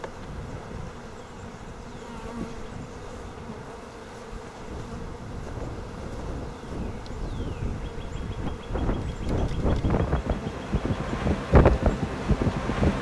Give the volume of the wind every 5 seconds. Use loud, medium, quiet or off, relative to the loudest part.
quiet, medium, loud.